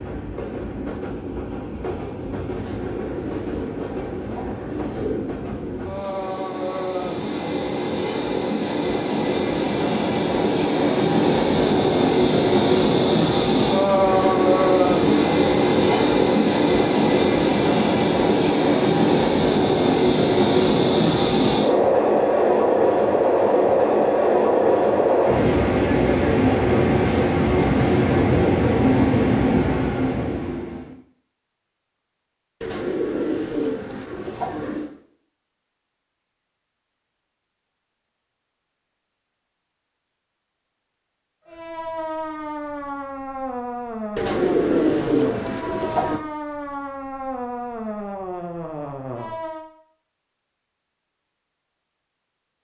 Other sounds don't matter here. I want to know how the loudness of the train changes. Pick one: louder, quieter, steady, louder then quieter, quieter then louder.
louder.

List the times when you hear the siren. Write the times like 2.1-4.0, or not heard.
41.5-49.7.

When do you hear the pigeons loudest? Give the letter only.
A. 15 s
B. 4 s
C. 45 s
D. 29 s
C.